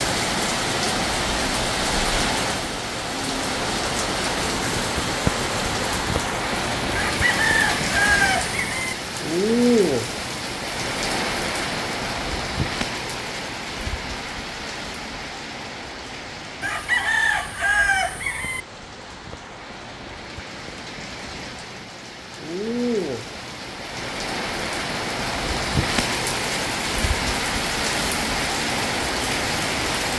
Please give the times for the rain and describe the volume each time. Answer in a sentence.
The rain can be heard from 0.0 to 30.1 s, getting quieter then louder.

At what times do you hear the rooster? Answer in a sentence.
The rooster can be heard from 7.0 to 8.9 s and from 16.6 to 18.6 s.